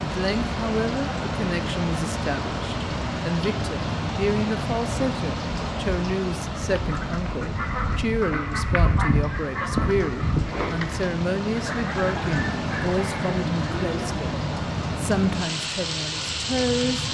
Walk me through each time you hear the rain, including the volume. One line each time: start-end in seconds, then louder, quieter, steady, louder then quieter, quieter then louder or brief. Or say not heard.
0.0-17.1 quieter then louder.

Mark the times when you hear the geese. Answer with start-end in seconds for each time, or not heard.
6.6-14.1.